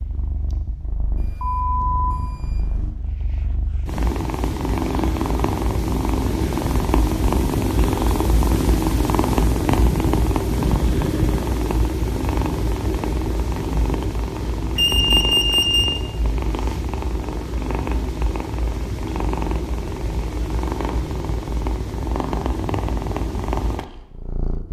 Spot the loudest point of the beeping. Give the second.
15 s.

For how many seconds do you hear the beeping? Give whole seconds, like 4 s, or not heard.
3 s.